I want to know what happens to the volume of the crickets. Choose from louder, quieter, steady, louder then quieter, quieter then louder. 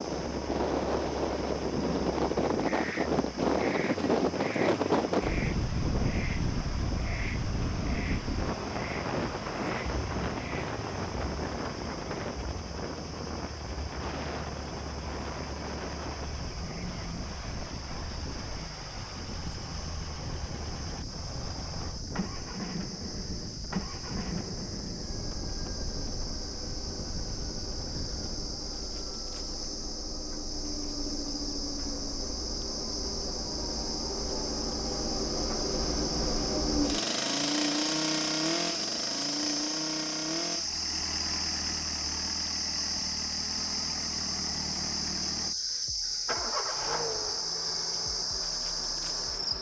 louder.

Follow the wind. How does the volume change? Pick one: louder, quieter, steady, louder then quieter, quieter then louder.
quieter.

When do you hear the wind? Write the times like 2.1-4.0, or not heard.
0.0-28.7.